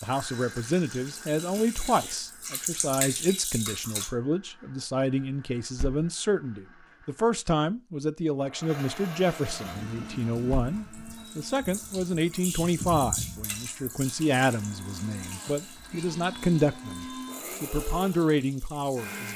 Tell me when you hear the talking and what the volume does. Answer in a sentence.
You can hear the talking from 0.0 to 19.3 s, at a steady volume.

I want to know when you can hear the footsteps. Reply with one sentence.
The footsteps can't be heard in this clip.